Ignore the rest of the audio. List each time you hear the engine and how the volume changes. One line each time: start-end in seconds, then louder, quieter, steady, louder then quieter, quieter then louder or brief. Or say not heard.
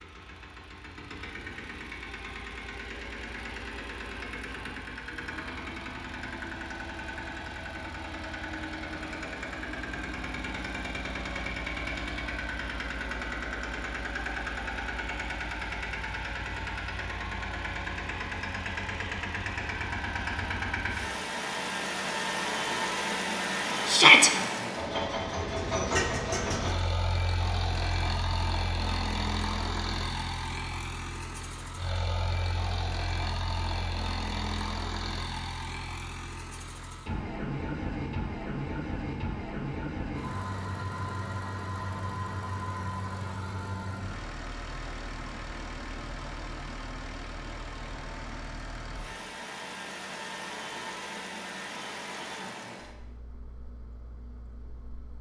0.0-55.1 louder then quieter.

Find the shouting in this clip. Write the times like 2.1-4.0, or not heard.
23.9-24.3.